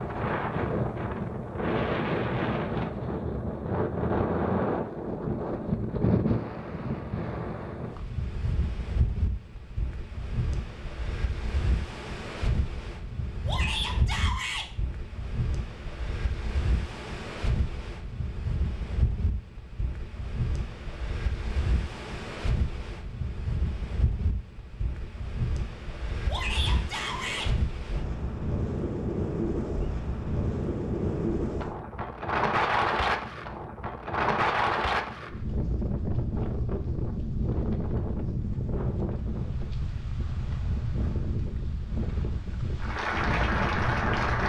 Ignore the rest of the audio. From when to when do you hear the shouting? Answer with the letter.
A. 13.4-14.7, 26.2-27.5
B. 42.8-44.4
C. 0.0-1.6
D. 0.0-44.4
A.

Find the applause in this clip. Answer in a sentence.
The applause can be heard from 42.8 to 44.4 s.